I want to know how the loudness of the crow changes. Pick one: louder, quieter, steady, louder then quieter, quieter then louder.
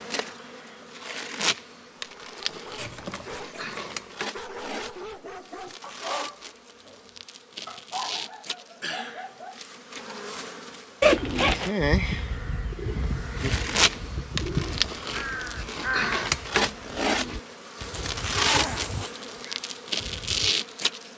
quieter.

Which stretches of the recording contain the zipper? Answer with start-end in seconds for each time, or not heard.
2.8-3.5, 11.0-11.7, 17.8-19.1.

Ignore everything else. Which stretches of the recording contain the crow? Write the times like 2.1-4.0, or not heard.
11.2-20.6.